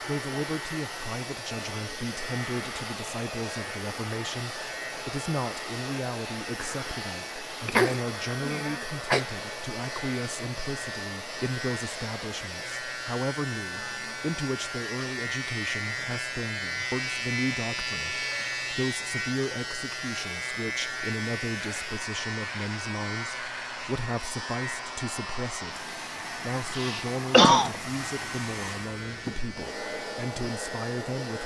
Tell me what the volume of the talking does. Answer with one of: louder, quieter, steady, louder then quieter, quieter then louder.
steady.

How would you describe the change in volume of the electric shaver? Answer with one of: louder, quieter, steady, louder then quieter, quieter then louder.
louder then quieter.